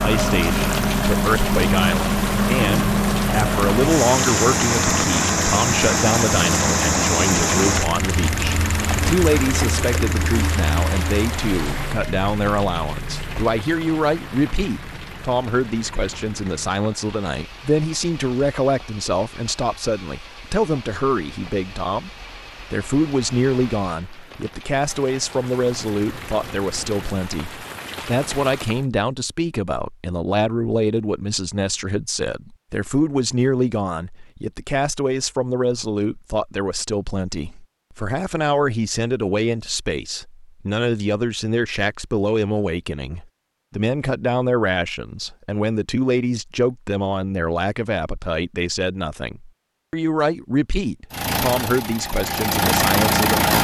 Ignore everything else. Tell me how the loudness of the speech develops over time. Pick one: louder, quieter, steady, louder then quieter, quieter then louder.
steady.